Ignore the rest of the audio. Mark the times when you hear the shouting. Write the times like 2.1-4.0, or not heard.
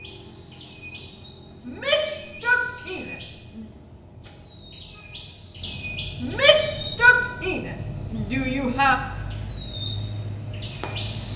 1.6-3.6, 6.2-9.0.